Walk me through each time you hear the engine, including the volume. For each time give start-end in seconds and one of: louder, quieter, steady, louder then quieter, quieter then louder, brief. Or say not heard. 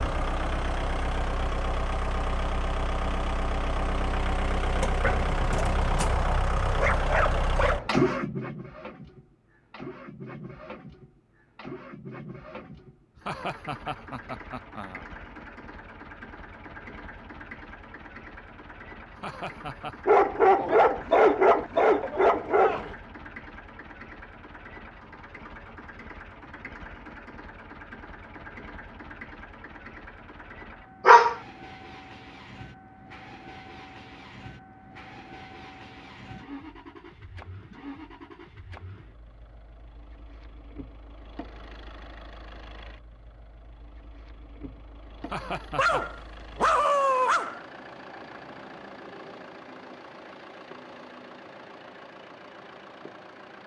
0.0-53.6 quieter.